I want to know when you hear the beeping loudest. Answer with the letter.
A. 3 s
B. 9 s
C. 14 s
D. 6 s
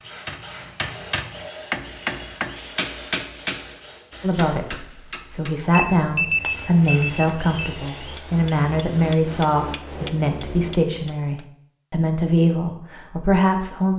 D.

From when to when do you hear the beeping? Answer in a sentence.
You can hear the beeping from 5.7 to 7.7 s.